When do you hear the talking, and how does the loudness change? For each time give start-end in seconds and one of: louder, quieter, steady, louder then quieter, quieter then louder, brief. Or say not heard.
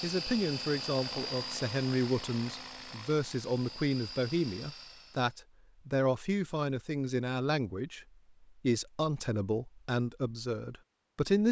0.0-11.4 steady.